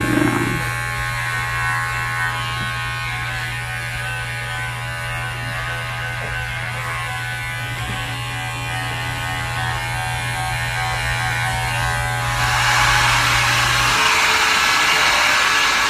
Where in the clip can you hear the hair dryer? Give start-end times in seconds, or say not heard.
12.2-15.8.